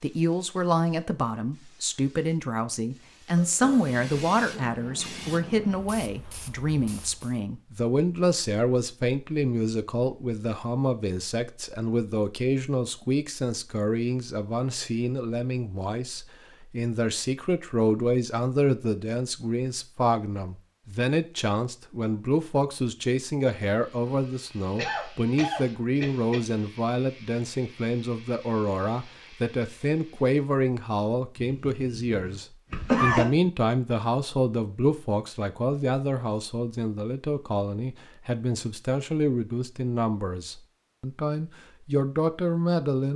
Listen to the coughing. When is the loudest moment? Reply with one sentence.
The loudest moment of the coughing is at 33 seconds.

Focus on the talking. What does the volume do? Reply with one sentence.
The volume of the talking stays about the same.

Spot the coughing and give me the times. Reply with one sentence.
You can hear the coughing from 3.4 to 4.7 s, from 24.8 to 26.4 s and from 31.4 to 33.2 s.